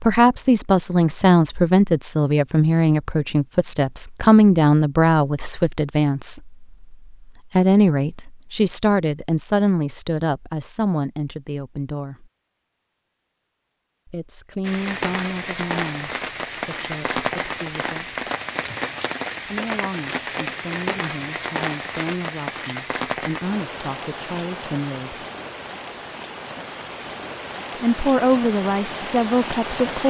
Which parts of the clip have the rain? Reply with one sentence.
The rain can be heard from 14.6 to 30.0 s.